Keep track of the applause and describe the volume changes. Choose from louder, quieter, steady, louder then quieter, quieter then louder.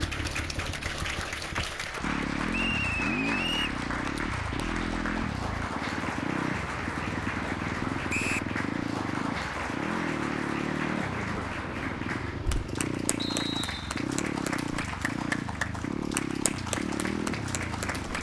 steady.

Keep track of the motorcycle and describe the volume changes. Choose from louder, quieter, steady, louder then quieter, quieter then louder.
steady.